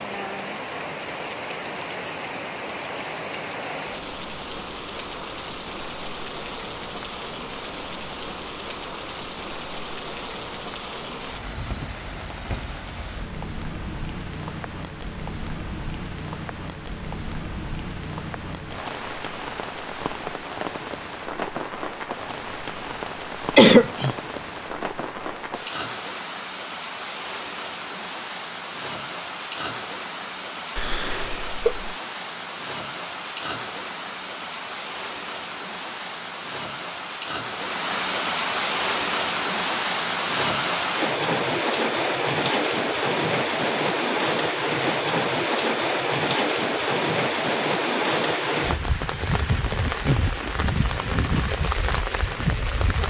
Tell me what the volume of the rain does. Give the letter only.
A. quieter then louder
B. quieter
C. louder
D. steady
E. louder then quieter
C.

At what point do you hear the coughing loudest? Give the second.
24 s.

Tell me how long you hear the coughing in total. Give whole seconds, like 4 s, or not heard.
2 s.